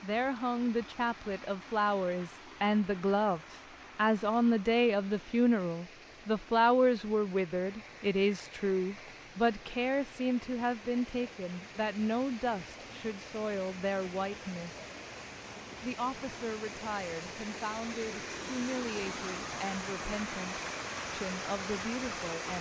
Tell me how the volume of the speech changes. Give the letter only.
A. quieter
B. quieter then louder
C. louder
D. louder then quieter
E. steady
A.